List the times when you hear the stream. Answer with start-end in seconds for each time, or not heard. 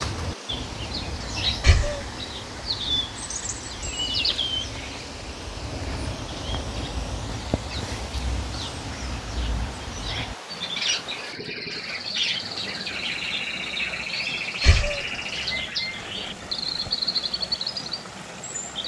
0.0-18.8.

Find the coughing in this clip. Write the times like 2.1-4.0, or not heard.
1.6-2.0, 3.9-4.3, 14.6-15.1.